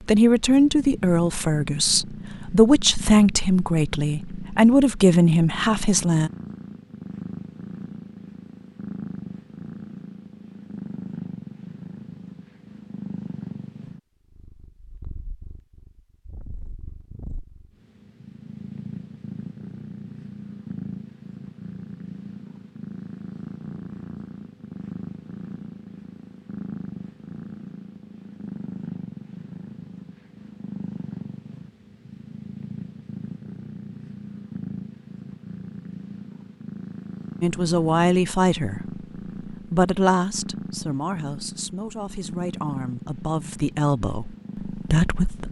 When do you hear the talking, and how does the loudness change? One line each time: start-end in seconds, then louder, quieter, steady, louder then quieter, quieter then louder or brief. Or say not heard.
0.1-6.3 steady
37.4-45.4 quieter then louder.